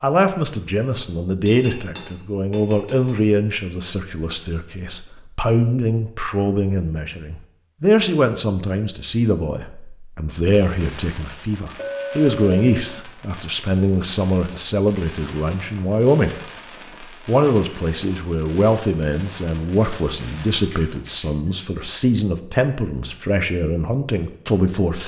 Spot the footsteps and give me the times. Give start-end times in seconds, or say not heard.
not heard.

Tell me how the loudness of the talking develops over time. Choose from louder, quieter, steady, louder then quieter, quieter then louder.
steady.